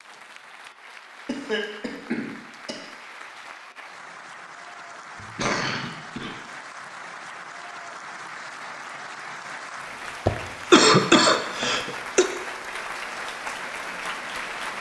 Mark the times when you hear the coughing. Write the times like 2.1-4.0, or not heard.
1.2-2.8, 5.2-6.3, 10.2-12.2.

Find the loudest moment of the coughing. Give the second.
11 s.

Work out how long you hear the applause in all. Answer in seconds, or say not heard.
15 s.